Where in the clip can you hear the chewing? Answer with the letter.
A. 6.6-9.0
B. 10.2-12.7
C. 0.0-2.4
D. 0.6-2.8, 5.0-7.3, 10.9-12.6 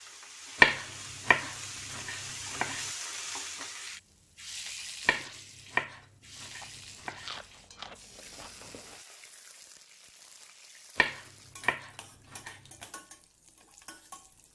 A.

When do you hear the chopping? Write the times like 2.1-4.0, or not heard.
0.6-2.8, 5.0-7.3, 10.9-12.6.